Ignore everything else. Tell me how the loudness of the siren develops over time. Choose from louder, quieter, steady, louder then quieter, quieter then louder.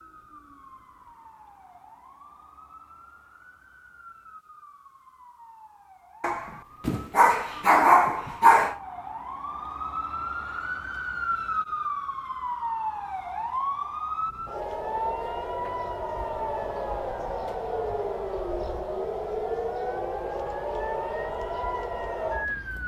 louder.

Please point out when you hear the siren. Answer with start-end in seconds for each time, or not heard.
0.0-22.8.